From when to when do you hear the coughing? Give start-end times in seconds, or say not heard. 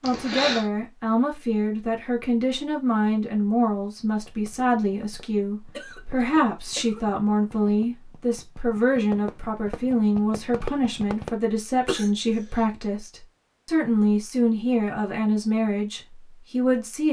0.0-0.7, 5.7-7.0, 11.8-12.7.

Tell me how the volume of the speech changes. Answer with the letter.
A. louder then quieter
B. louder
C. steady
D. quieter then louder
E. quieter
C.